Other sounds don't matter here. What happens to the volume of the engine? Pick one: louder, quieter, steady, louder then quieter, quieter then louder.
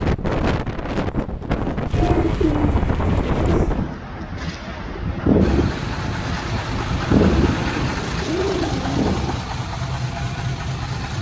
steady.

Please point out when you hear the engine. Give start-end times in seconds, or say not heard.
5.4-11.1.